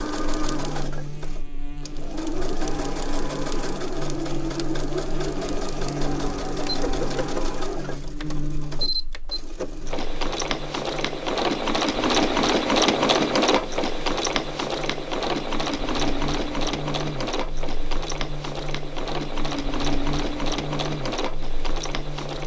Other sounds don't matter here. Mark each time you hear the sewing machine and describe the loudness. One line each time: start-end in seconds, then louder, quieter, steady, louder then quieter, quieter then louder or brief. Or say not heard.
0.0-22.4 louder then quieter.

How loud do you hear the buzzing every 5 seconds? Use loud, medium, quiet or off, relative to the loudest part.
loud, loud, medium, loud, loud.